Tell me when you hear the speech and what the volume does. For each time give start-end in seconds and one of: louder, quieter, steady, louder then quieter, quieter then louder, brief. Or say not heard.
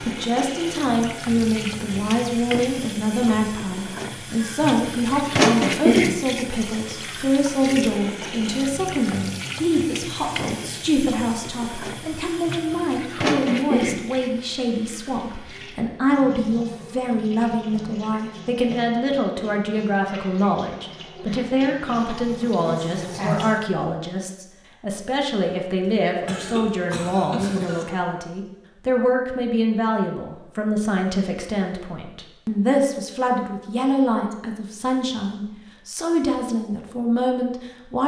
0.0-38.0 steady.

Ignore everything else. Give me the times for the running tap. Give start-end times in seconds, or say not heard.
0.0-23.6.